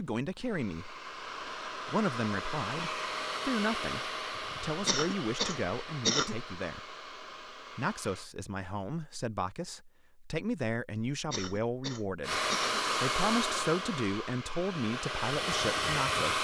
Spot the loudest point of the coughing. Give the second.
6 s.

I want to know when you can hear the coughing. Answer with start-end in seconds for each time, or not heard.
4.8-6.3, 11.3-12.8.